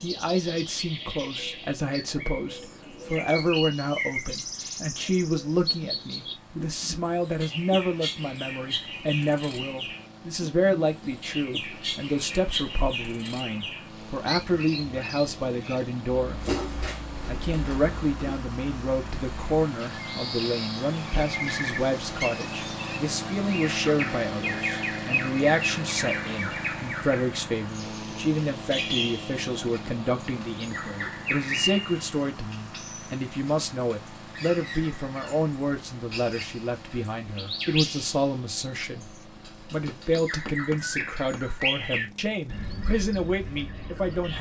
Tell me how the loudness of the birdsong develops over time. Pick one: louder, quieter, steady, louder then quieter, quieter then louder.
steady.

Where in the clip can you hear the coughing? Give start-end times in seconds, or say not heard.
not heard.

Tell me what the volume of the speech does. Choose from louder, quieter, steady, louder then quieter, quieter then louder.
steady.